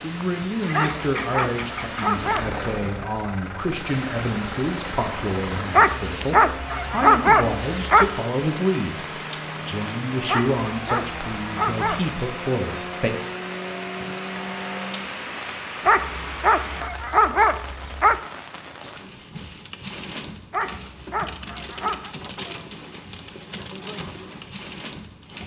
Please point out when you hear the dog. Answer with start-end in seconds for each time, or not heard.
0.7-2.6, 5.7-8.2, 10.2-12.2, 15.8-18.2, 20.5-22.1.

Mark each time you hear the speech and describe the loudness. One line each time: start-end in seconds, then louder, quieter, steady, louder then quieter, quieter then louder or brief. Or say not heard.
0.0-13.1 steady.